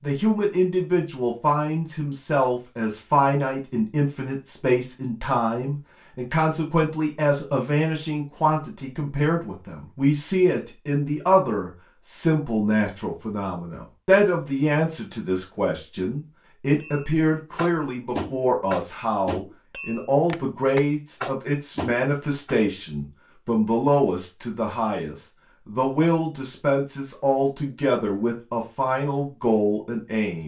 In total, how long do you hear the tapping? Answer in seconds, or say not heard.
6 s.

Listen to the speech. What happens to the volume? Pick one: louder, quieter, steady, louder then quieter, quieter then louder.
steady.